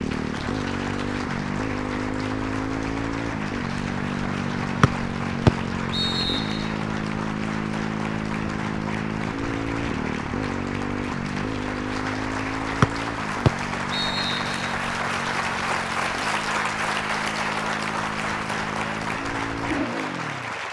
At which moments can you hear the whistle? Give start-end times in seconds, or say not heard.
4.8-6.7, 12.8-14.6.